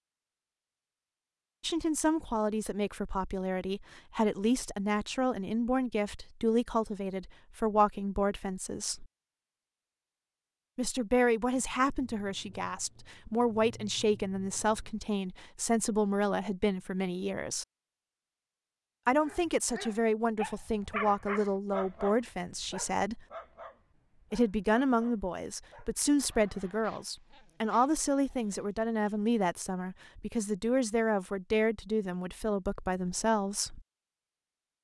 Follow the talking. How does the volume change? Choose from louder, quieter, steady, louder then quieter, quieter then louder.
steady.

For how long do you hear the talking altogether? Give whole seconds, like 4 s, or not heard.
28 s.